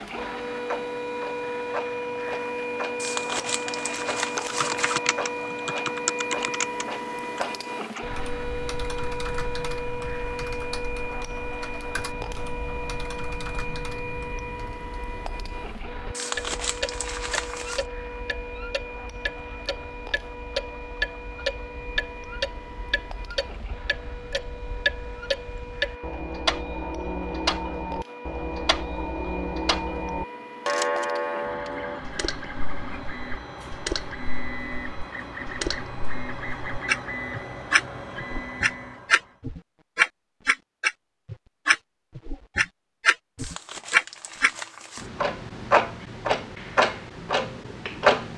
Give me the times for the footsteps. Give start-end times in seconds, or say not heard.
not heard.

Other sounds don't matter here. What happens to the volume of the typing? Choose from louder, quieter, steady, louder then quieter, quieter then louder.
quieter.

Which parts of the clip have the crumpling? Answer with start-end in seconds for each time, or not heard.
3.0-5.0, 16.1-17.9, 43.4-45.1.